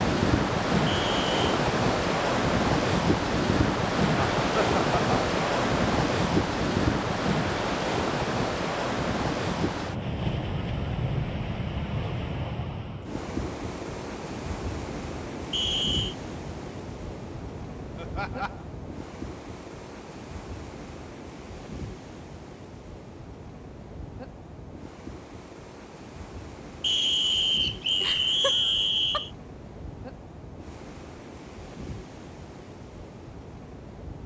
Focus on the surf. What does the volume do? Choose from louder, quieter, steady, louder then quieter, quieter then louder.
quieter.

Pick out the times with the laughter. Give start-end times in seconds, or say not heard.
4.2-5.2, 17.9-18.6, 28.0-29.2.